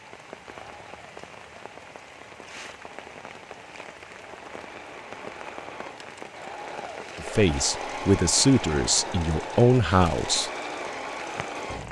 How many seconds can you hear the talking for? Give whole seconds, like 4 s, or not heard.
3 s.